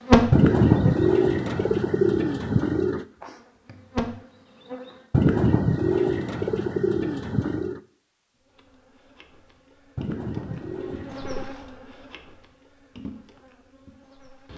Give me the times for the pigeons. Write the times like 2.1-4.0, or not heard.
0.3-3.0, 5.1-7.8, 9.9-11.6.